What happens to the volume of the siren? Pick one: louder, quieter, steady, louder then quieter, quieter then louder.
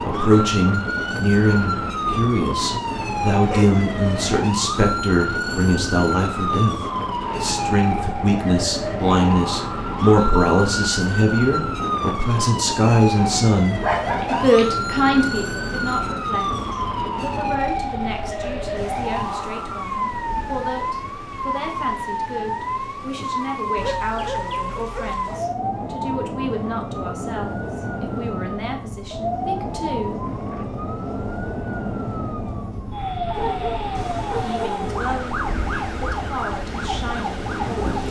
steady.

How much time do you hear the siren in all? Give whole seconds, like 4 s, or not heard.
38 s.